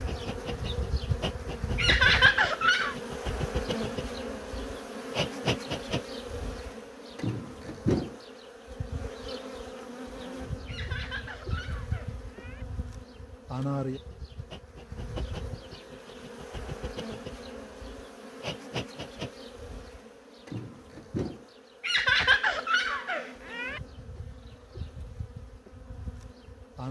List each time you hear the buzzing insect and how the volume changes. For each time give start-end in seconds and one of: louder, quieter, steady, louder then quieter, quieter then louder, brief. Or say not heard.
0.0-26.8 quieter.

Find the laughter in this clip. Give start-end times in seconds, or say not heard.
1.8-3.0, 10.7-12.7, 21.8-23.8.